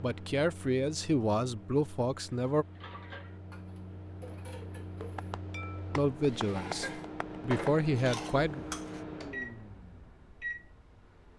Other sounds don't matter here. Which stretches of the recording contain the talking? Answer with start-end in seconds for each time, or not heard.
0.0-2.6, 6.0-8.7.